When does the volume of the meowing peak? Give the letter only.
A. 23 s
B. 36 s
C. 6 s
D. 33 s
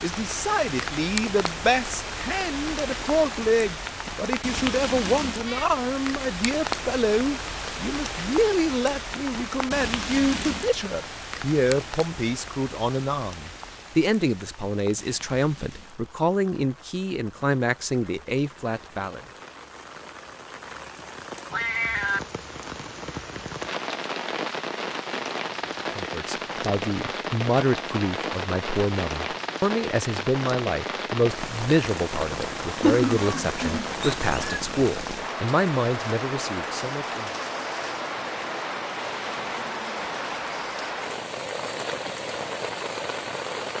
D.